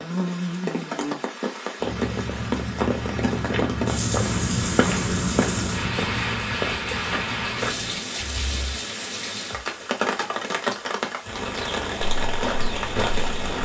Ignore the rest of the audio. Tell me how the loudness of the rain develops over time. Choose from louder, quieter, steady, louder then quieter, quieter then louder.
steady.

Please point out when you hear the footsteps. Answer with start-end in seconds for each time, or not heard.
1.8-8.8, 12.2-13.6.